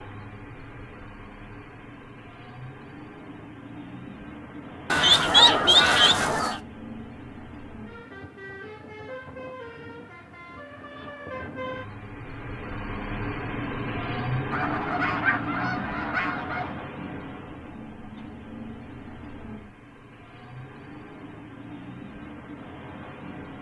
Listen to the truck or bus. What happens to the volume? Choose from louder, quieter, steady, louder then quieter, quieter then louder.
louder then quieter.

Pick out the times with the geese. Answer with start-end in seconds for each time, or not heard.
4.9-6.6, 14.5-16.8.